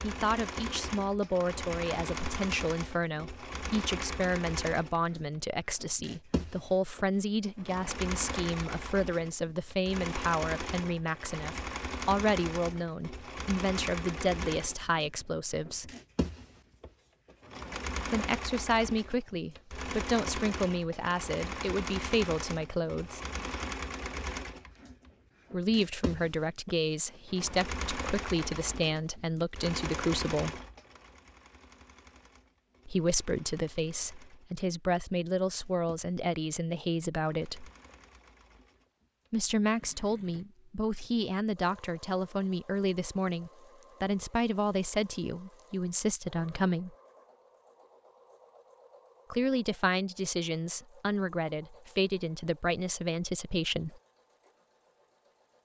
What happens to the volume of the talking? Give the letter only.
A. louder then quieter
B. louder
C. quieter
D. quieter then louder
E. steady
E.